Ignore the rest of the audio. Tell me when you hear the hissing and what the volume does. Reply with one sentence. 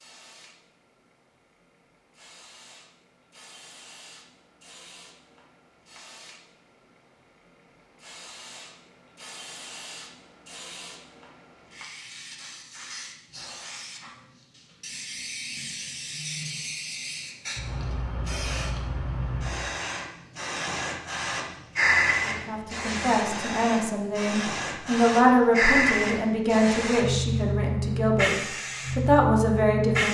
The hissing can be heard from 0.0 to 30.0 s, getting louder.